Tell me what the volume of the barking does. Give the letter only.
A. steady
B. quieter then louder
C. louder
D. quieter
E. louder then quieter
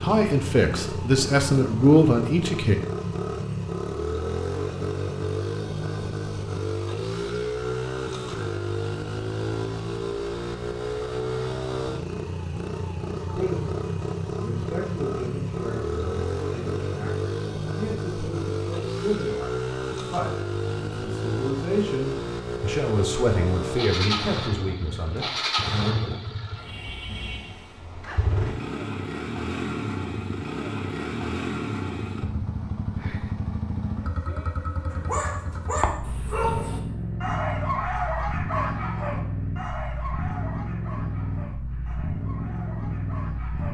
D.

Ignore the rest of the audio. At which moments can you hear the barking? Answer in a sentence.
The barking can be heard from 34.9 to 43.6 s.